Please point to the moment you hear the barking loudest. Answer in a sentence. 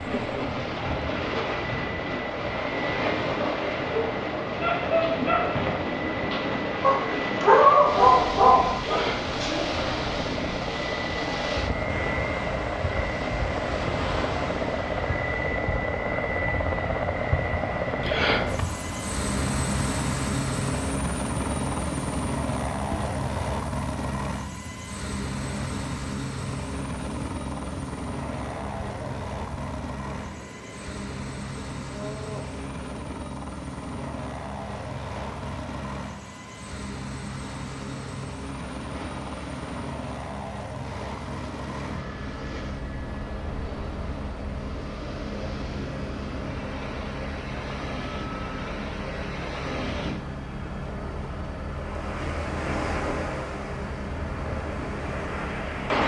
The loudest moment of the barking is at 8 seconds.